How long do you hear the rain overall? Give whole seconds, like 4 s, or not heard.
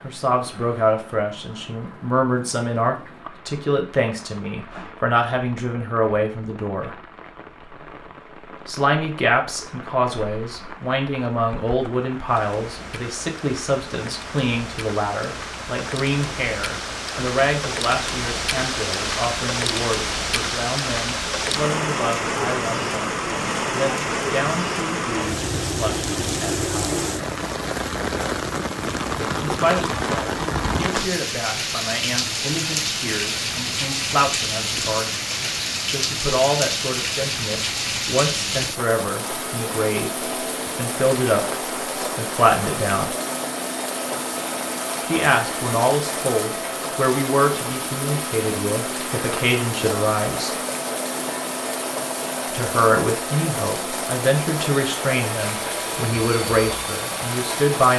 58 s.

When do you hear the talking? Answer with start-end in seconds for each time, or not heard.
0.0-7.0, 8.7-27.1, 29.4-35.2, 35.9-43.1, 45.0-50.5, 52.5-57.9.